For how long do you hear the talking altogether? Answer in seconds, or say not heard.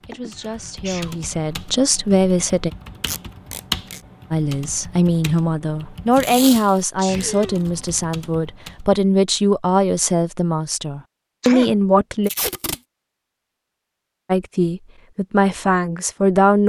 13 s.